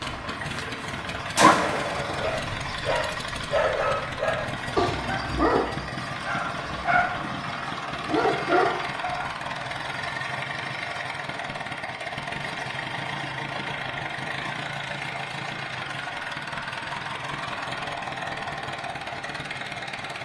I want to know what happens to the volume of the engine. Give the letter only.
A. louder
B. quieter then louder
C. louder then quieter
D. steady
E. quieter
D.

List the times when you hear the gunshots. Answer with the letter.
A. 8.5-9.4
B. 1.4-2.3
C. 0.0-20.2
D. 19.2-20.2
B.